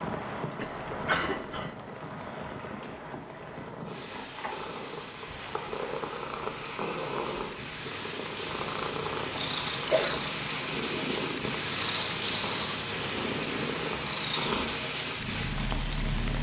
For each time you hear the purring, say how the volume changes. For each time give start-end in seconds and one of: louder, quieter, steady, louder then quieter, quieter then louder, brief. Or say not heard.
0.2-16.3 louder.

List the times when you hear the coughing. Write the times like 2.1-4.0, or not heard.
0.6-1.8, 9.3-10.2.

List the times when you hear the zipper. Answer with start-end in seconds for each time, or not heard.
not heard.